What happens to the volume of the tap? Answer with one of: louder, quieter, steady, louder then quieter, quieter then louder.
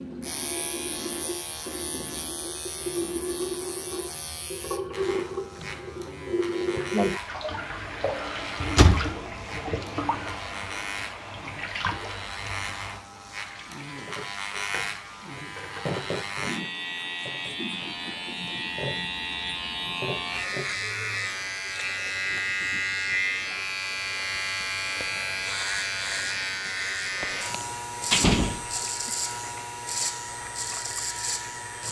quieter.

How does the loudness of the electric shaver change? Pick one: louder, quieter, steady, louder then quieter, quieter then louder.
louder.